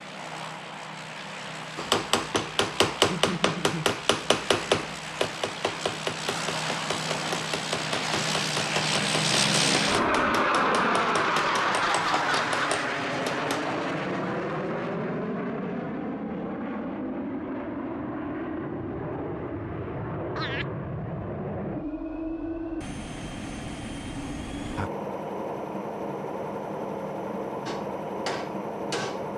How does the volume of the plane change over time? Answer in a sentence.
The volume of the plane goes up, then down.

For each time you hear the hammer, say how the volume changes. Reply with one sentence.
The hammer can be heard from 1.8 to 13.6 s, getting quieter; and briefly from 27.6 to 29.3 s.